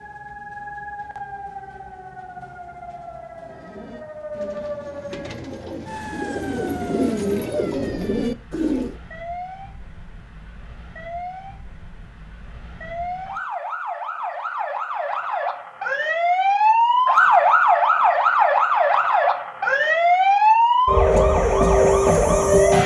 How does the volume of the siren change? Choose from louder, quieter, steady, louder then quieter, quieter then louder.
louder.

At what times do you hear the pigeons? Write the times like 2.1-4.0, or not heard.
3.4-9.0.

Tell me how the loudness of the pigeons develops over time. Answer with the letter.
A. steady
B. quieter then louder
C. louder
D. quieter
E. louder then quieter
C.